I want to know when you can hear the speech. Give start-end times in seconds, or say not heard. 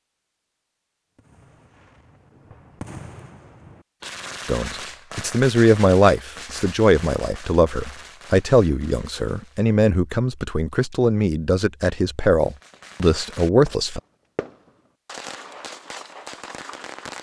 4.5-14.0.